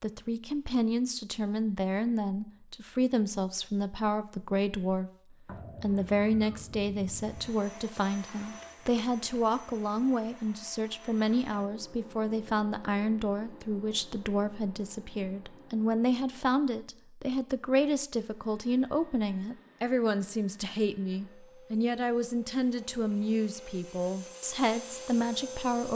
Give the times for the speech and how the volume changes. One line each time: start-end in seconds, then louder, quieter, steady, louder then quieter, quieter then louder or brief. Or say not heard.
0.0-25.9 steady.